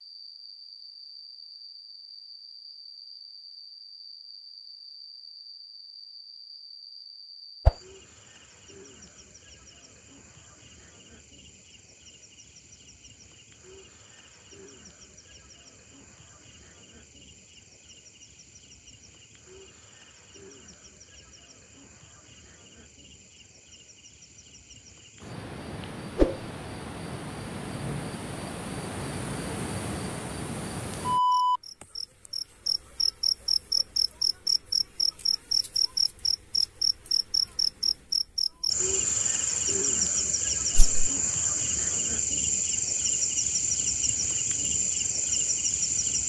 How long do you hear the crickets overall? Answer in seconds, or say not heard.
46 s.